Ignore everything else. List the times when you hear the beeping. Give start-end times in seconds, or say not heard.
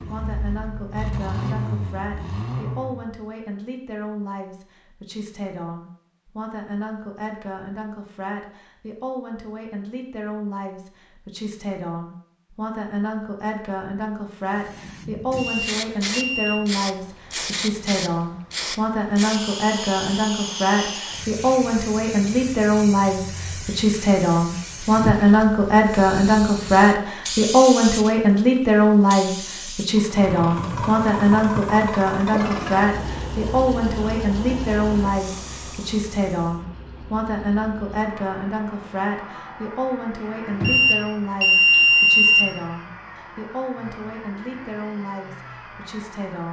15.2-16.6, 40.5-42.5.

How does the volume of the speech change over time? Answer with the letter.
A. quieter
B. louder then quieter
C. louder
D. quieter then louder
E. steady
B.